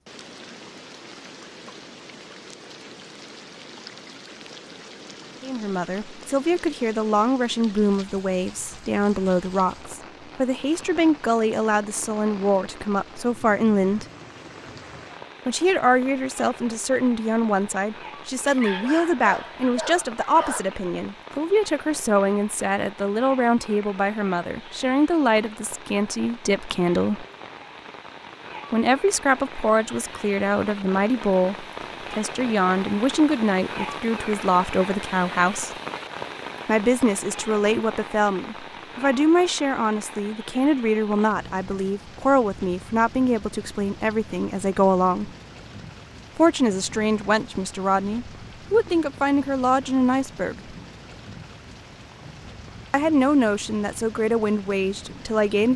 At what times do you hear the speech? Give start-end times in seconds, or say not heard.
5.4-14.1, 15.4-27.2, 28.7-35.7, 36.6-45.3, 46.4-50.8, 52.9-55.7.